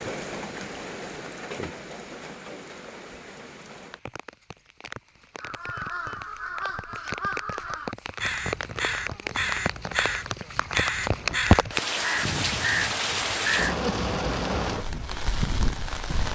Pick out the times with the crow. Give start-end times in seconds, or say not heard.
5.3-13.8.